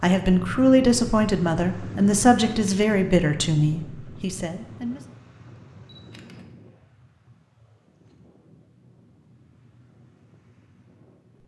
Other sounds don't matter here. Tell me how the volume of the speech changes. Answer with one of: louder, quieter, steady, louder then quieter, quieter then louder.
quieter.